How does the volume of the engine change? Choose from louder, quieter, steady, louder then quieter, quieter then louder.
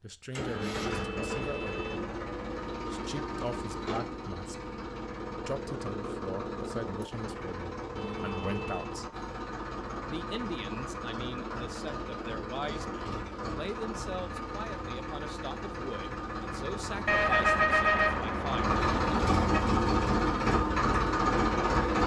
louder.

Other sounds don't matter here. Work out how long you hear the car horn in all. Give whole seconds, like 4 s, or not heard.
5 s.